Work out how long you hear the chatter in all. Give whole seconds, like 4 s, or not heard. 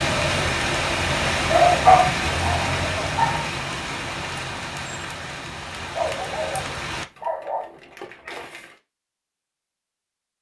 not heard.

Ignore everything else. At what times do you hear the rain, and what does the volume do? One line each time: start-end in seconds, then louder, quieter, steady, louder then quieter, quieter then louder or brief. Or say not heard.
0.0-7.0 quieter.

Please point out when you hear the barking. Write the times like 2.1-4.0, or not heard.
1.5-3.5, 5.8-8.8.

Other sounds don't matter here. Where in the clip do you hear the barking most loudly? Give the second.
2 s.